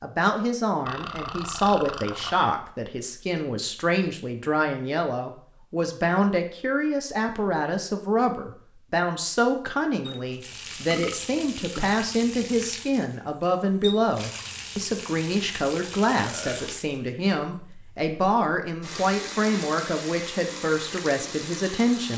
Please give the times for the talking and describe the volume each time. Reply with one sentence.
You can hear the talking from 0.0 to 22.1 s, at a steady volume.